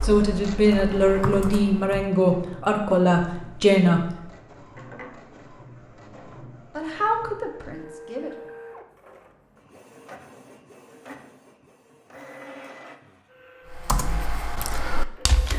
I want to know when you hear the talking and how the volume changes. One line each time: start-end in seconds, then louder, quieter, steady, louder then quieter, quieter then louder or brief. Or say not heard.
0.0-4.1 steady
6.8-8.6 brief.